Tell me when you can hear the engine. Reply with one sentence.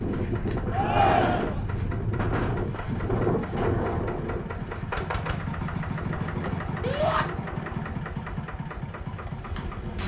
The engine can be heard from 0.0 to 10.0 s.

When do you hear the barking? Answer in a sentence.
You can't hear the barking here.